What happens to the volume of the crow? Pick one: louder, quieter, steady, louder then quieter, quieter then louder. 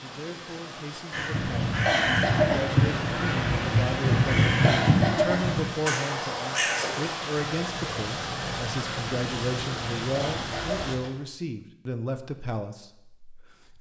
quieter.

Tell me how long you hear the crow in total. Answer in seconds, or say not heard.
10 s.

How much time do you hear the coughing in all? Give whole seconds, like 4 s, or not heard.
2 s.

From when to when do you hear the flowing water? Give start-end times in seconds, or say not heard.
0.0-11.1.